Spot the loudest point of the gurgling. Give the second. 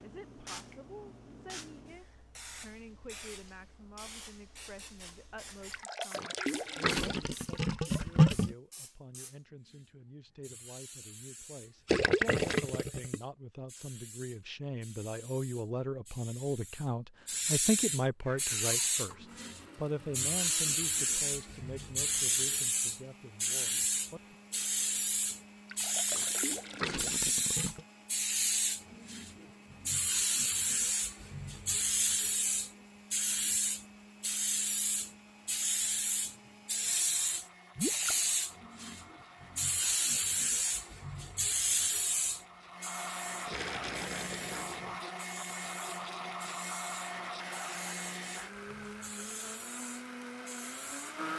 8 s.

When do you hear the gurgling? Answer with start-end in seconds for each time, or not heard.
5.7-8.6, 11.8-13.2, 25.7-27.9, 37.8-38.2, 43.5-45.0.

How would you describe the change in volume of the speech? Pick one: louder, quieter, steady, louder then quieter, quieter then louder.
louder then quieter.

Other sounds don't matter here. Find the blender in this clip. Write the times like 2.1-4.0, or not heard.
18.2-51.3.